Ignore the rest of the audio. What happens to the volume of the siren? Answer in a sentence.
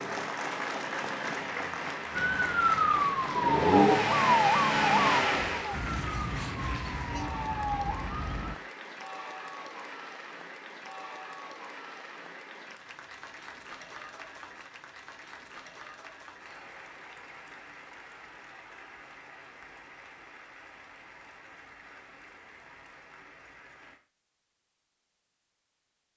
The loudness of the siren goes down.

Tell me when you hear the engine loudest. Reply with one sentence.
The volume of the engine peaks at 4 seconds.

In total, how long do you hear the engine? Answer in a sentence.
You can hear the engine for 6 seconds altogether.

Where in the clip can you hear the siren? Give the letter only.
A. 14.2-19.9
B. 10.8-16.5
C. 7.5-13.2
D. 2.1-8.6
D.